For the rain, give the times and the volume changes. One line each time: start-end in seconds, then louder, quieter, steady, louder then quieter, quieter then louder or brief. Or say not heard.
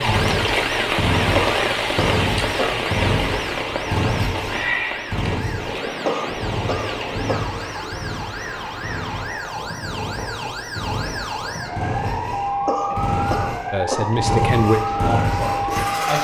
0.0-16.1 quieter.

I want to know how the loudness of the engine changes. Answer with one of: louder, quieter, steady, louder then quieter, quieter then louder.
quieter then louder.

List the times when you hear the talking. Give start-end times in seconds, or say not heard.
13.7-16.1.